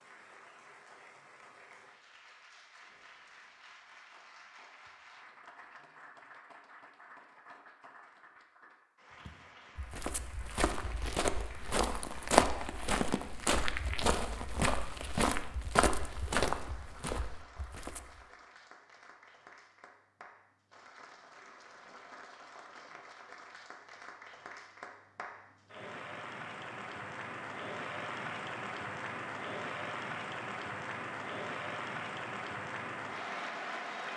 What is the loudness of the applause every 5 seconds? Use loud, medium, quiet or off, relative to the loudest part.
quiet, quiet, quiet, quiet, quiet, loud, loud.